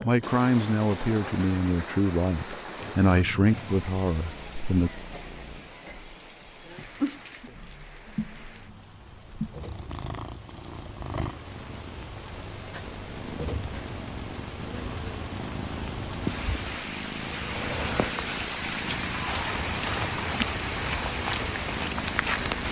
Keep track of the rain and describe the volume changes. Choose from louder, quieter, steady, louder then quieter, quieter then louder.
quieter then louder.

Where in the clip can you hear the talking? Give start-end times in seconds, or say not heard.
0.0-4.9.